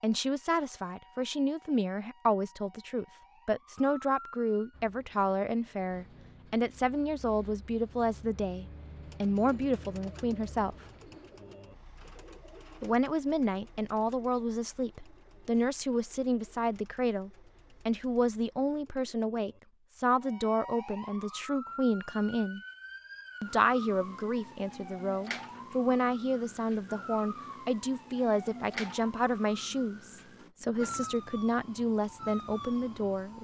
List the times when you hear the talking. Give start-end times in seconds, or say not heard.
0.0-10.8, 12.8-22.6, 23.4-33.3.